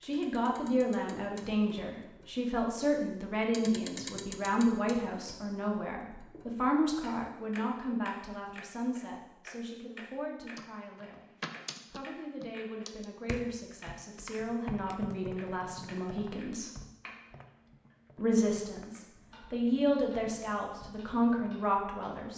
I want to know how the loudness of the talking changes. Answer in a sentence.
The volume of the talking goes down, then up.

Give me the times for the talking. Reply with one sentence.
The talking can be heard from 0.0 to 11.2 s, from 11.9 to 16.7 s and from 18.1 to 22.3 s.